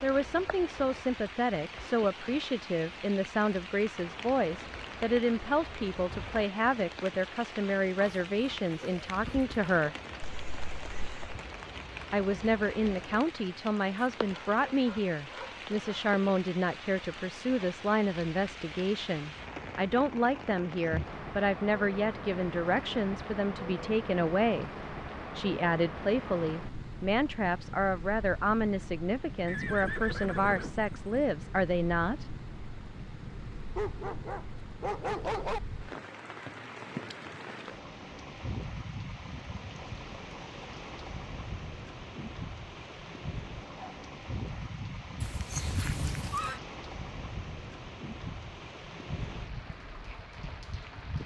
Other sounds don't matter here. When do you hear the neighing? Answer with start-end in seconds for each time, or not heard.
10.2-11.4, 29.4-31.1, 45.2-46.6.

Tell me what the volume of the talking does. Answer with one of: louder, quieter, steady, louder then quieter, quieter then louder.
steady.